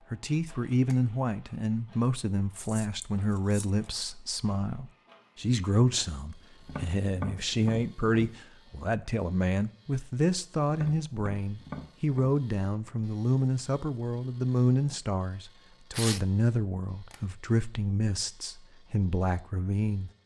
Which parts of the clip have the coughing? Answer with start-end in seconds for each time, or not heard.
not heard.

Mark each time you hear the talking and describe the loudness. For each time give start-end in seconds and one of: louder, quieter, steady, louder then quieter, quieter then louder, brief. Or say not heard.
0.1-20.1 steady.